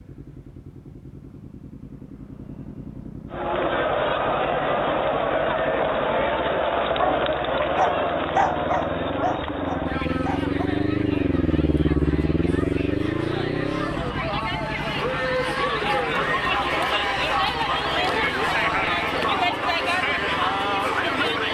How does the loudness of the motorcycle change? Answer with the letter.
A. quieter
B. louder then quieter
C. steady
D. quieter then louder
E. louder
B.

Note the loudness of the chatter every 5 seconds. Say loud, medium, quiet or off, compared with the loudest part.
loud, loud, medium, loud, loud.